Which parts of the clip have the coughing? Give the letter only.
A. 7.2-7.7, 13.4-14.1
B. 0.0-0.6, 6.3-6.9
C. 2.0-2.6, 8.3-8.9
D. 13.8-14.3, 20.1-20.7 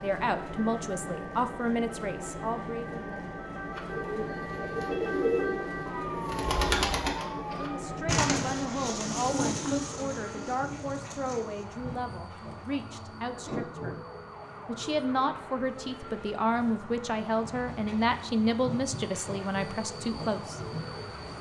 A.